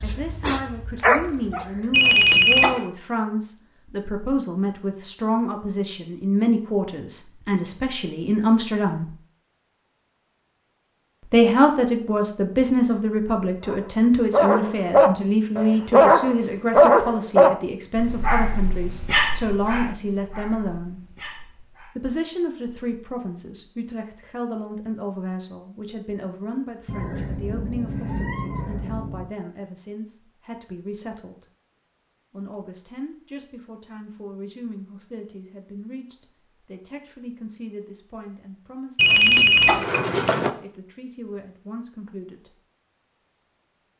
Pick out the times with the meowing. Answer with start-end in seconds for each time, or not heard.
26.9-29.3.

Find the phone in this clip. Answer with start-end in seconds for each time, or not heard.
1.9-2.9, 39.0-40.5.